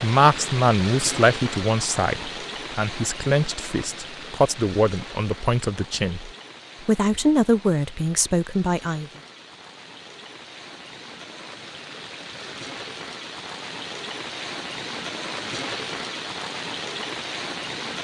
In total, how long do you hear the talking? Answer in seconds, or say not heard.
9 s.